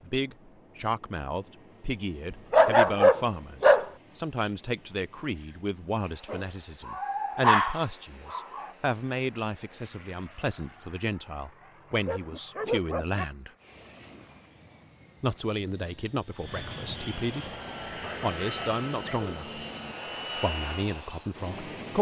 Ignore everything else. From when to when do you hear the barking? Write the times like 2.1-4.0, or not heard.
2.3-3.9, 6.3-8.7, 12.1-13.2, 18.0-19.9.